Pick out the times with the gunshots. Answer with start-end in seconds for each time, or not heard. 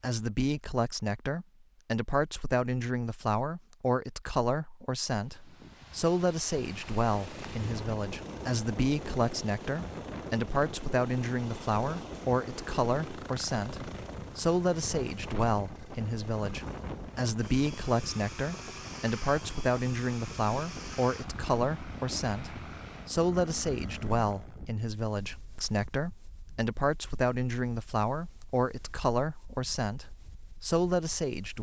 not heard.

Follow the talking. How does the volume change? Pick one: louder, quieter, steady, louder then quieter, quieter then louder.
steady.